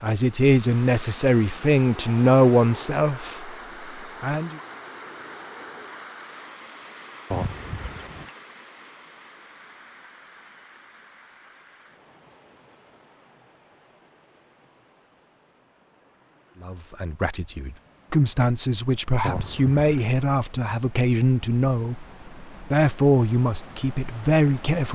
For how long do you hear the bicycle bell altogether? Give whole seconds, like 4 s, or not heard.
2 s.